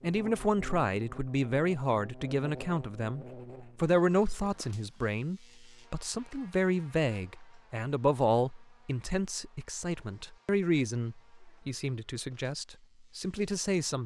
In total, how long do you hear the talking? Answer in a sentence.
You can hear the talking for 14 seconds altogether.